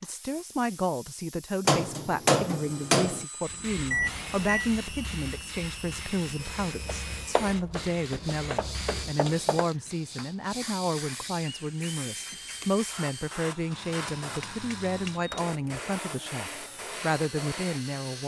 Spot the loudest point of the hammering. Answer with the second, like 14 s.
2 s.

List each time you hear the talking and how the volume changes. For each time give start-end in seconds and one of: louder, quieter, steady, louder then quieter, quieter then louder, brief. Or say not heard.
0.0-18.2 steady.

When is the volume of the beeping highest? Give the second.
4 s.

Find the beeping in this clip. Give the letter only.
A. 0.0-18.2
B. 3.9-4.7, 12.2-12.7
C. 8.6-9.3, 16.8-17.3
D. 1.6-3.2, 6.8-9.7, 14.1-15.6
B.